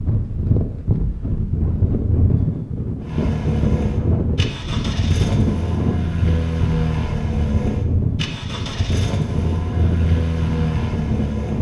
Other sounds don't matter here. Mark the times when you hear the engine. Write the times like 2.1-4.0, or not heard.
3.0-11.5.